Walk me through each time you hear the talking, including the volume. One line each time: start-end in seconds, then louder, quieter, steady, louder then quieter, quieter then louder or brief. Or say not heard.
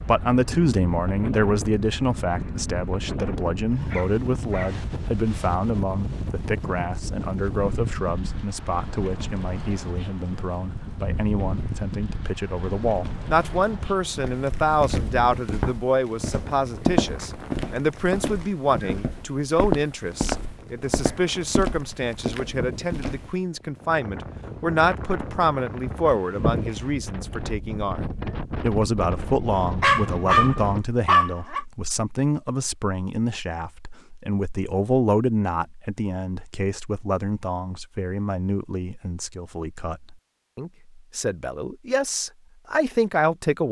0.0-43.6 steady.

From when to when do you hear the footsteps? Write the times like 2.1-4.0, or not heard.
14.2-23.3.